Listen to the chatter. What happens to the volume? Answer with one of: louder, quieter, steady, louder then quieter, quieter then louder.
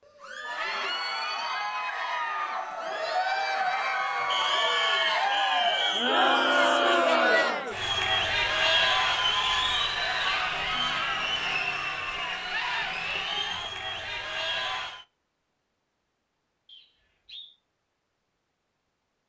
louder then quieter.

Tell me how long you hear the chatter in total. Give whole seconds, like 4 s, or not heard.
15 s.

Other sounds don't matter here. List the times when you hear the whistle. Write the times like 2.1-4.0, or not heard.
4.3-6.8, 16.6-17.6.